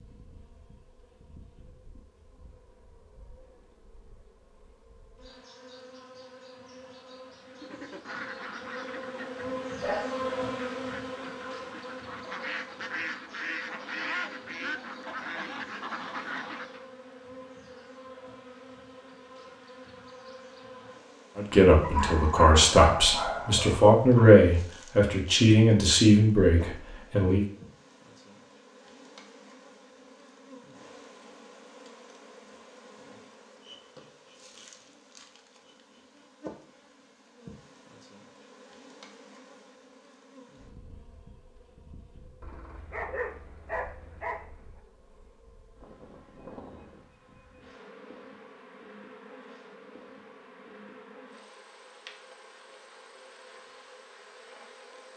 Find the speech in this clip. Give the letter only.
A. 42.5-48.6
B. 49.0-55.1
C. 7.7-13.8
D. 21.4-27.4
D.